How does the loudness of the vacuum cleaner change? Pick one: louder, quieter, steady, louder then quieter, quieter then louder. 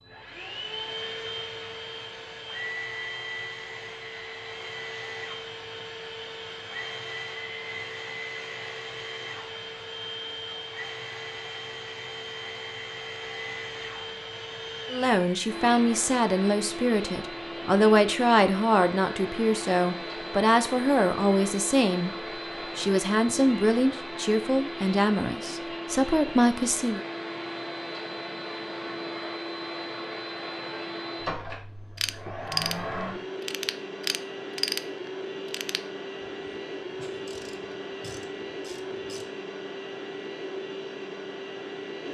steady.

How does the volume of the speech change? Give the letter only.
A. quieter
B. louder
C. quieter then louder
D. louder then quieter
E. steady
E.